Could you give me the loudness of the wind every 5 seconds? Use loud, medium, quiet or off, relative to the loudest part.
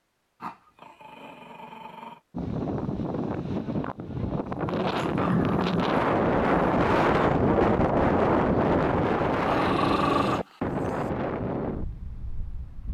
medium, loud, medium.